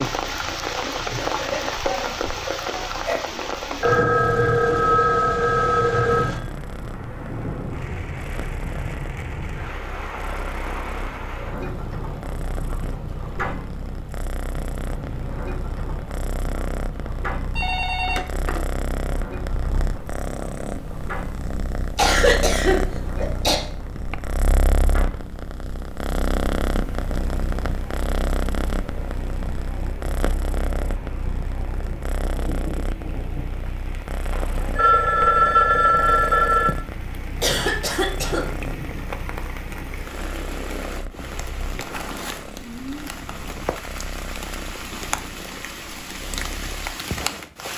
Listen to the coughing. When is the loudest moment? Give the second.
22 s.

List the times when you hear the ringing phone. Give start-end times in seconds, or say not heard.
3.8-6.5, 17.6-18.8, 34.3-36.8.